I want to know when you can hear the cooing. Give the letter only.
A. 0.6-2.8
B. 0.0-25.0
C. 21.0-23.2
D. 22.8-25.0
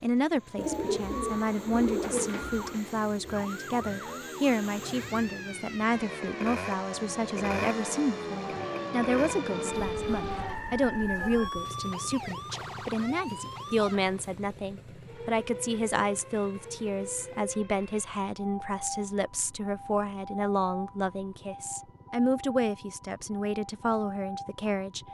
A.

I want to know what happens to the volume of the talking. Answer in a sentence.
The loudness of the talking stays about the same.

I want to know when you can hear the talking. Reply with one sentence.
The talking can be heard from 0.0 to 25.0 s.